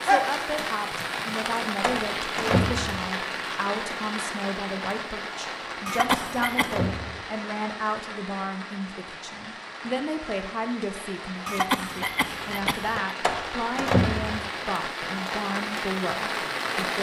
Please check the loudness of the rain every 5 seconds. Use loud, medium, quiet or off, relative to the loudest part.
loud, medium, medium, loud.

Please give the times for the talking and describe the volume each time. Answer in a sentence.
You can hear the talking from 0.0 to 16.9 s, at a steady volume.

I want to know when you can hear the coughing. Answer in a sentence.
You can hear the coughing from 5.8 to 6.8 s and from 11.4 to 13.2 s.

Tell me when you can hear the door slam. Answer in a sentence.
The door slam can be heard from 1.8 to 3.1 s, from 6.0 to 7.2 s and from 13.2 to 14.5 s.